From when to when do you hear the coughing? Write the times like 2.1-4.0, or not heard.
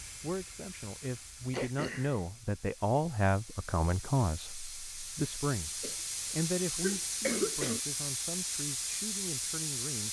1.5-2.2, 5.8-7.8.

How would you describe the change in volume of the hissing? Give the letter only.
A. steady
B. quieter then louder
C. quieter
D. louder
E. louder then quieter
D.